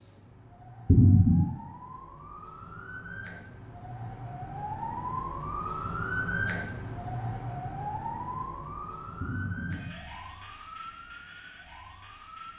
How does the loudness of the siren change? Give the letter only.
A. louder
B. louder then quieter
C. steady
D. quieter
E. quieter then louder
B.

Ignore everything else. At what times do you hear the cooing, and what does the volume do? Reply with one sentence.
The cooing can't be heard in this clip.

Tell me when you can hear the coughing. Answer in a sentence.
The coughing can be heard from 0.8 to 1.5 s and from 9.2 to 10.1 s.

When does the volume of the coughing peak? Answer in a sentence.
The volume of the coughing peaks at 1 second.